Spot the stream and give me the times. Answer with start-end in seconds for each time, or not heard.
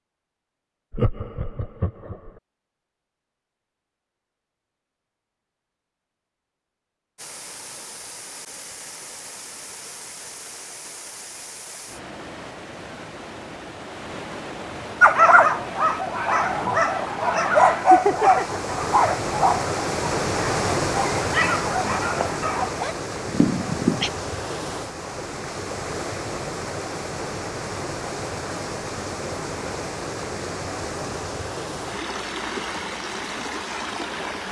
7.2-34.4.